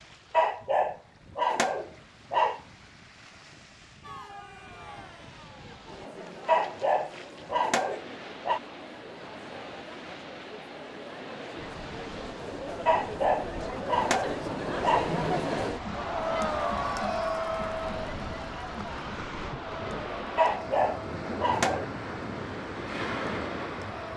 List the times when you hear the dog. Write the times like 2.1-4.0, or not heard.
0.3-2.6, 6.5-8.6, 12.8-15.1, 20.4-21.9.